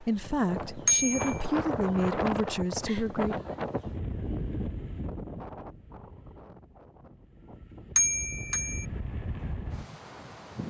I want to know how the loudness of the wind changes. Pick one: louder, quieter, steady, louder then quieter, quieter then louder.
quieter then louder.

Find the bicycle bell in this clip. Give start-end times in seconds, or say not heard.
0.8-1.4, 8.0-8.8.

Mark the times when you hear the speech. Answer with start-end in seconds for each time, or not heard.
0.0-3.4.